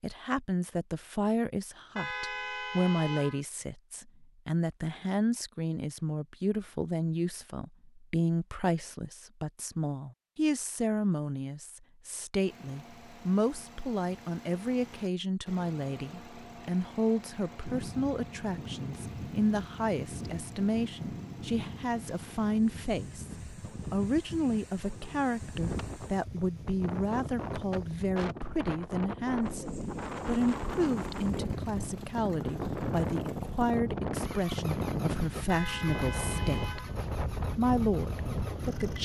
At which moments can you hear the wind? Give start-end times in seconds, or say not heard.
17.6-38.9.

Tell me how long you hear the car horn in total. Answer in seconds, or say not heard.
3 s.